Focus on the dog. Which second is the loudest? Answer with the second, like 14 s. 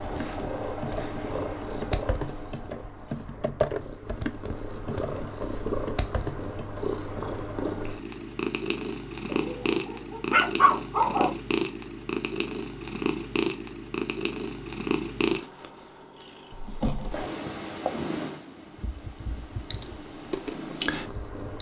11 s.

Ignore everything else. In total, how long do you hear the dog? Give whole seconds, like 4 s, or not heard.
2 s.